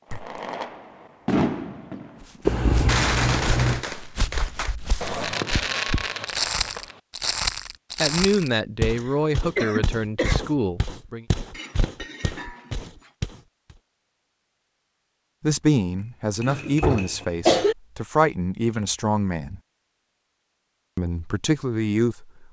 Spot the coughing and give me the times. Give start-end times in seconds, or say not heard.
2.5-3.9, 8.9-10.4, 16.4-17.8.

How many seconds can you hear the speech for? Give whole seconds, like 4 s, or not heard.
9 s.